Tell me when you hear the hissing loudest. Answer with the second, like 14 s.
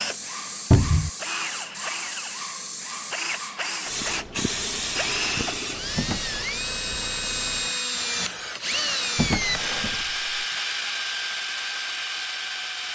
5 s.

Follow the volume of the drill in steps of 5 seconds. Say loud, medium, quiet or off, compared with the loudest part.
medium, loud, loud.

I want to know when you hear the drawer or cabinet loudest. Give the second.
1 s.